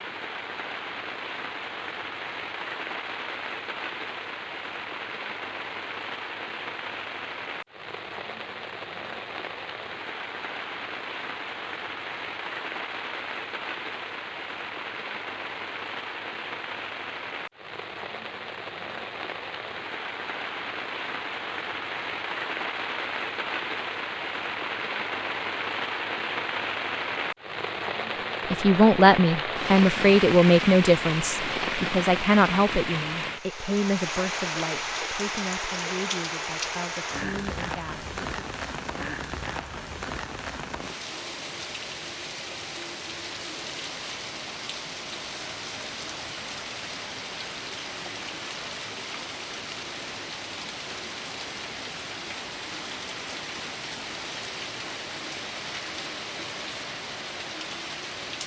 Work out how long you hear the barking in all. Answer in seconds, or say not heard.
not heard.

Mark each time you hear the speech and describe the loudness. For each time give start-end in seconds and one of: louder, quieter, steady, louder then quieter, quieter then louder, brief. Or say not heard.
28.5-38.5 quieter.